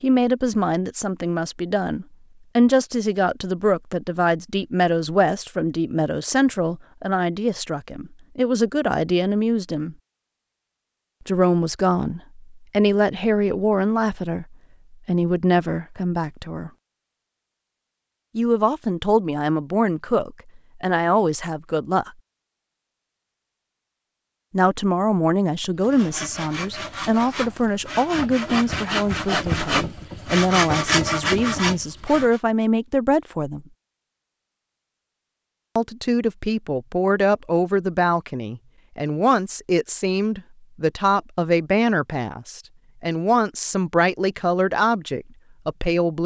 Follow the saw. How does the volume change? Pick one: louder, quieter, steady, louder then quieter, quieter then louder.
louder.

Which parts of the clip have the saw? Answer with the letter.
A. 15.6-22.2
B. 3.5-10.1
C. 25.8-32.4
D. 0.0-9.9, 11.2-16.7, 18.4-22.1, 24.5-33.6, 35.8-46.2
C.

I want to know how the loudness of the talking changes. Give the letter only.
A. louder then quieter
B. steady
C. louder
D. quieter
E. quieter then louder
B.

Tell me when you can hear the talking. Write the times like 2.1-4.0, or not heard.
0.0-9.9, 11.2-16.7, 18.4-22.1, 24.5-33.6, 35.8-46.2.